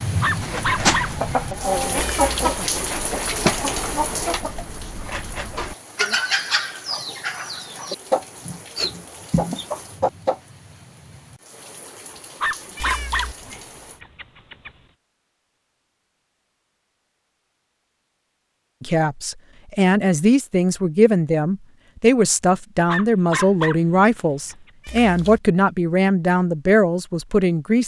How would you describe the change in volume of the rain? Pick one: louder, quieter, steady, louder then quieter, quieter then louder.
quieter.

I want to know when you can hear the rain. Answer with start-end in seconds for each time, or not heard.
0.0-14.0.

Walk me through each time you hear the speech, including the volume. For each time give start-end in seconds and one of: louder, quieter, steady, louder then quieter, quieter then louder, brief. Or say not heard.
18.8-27.8 steady.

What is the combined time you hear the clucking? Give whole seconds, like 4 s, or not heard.
10 s.